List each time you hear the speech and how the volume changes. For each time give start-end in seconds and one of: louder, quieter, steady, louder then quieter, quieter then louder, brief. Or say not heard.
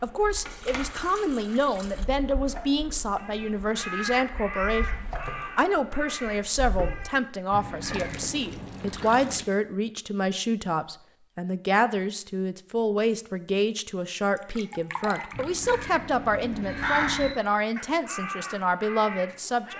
0.0-19.7 steady.